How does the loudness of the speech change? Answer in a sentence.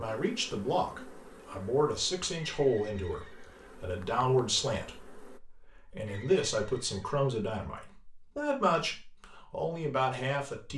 The loudness of the speech stays about the same.